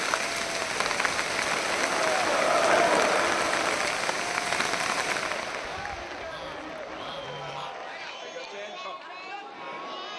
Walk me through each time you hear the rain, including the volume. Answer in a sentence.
The rain can be heard from 0.0 to 8.2 s, getting quieter.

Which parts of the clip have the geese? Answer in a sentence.
The geese can be heard from 5.6 to 7.8 s.